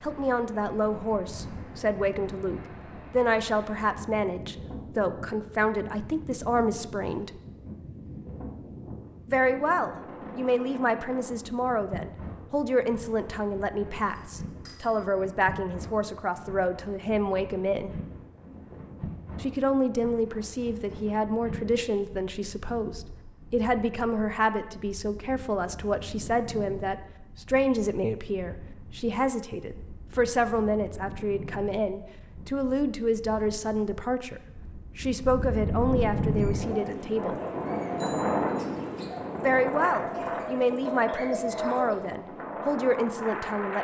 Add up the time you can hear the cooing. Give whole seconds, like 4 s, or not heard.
6 s.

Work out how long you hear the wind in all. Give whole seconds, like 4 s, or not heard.
44 s.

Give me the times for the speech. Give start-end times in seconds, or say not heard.
0.0-7.3, 9.2-17.9, 19.4-37.4, 39.4-43.7.